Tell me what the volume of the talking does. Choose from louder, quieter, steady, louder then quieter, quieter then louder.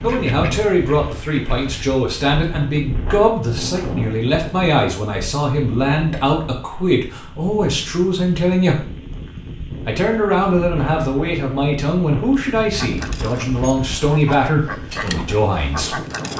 steady.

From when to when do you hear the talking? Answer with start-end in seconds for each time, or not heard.
0.0-8.8, 9.8-16.0.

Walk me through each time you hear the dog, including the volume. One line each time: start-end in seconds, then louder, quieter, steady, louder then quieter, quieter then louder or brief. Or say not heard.
not heard.